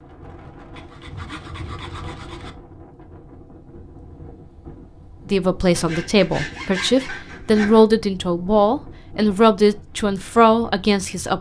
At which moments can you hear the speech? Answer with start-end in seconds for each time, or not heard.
5.3-11.3.